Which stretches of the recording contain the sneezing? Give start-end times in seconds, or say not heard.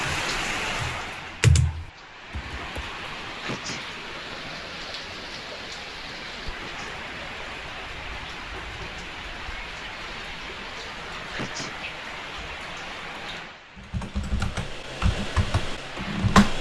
3.4-4.0, 6.5-7.0, 11.3-11.8.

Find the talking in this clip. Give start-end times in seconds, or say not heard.
not heard.